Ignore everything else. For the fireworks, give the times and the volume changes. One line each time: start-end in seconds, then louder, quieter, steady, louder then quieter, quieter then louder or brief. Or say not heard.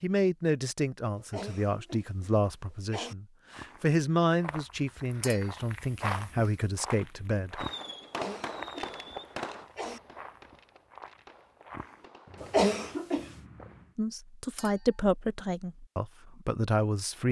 7.5-12.7 quieter.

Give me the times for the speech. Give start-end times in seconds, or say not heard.
0.0-7.7, 13.9-17.2.